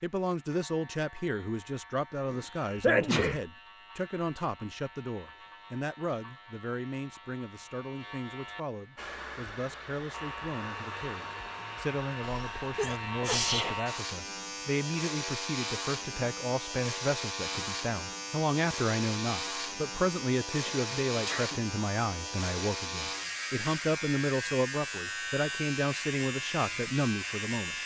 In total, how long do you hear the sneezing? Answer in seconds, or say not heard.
4 s.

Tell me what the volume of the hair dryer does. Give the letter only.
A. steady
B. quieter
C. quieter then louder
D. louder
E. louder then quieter
A.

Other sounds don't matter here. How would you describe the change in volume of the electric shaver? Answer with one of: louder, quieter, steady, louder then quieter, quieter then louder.
louder.